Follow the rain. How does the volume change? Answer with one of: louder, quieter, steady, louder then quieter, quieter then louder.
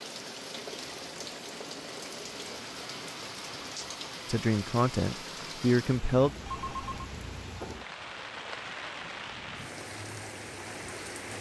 steady.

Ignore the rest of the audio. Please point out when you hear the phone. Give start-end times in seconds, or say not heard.
6.5-7.0.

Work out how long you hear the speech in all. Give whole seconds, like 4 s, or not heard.
2 s.